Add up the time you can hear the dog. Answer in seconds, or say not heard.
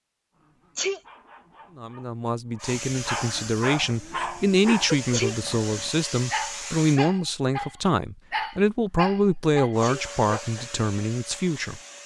10 s.